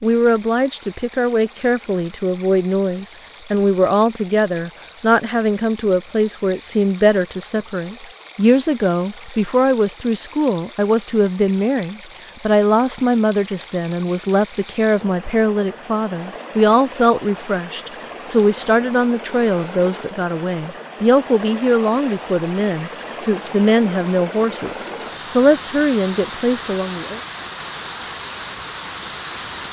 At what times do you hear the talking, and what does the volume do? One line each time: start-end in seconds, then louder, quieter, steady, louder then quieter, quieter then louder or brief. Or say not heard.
0.0-27.2 steady.